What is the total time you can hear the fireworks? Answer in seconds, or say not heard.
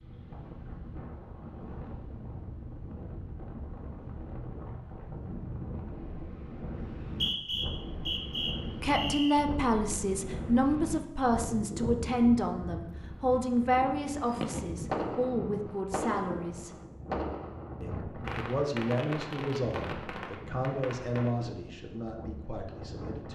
7 s.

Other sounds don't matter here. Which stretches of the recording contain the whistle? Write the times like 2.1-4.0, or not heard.
7.0-9.3.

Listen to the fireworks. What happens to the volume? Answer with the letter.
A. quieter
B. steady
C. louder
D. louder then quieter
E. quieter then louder
A.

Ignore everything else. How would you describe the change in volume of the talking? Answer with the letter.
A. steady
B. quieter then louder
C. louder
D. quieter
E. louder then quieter
D.